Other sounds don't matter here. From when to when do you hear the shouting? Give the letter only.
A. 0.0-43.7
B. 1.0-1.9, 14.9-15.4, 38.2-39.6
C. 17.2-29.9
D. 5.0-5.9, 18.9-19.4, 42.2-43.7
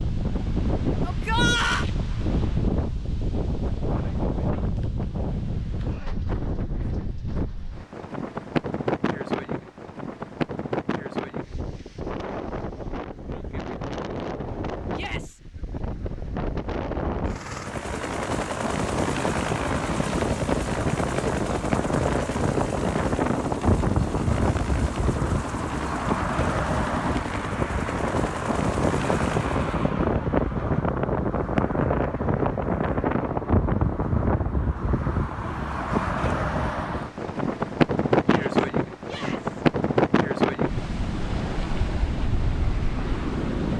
B.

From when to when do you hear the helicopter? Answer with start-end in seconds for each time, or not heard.
17.2-29.9.